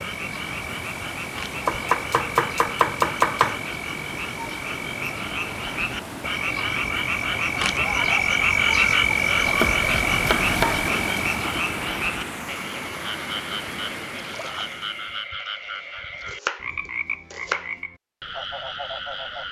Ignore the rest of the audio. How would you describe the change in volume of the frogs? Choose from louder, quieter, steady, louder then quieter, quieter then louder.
louder then quieter.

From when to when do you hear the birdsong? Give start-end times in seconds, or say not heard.
not heard.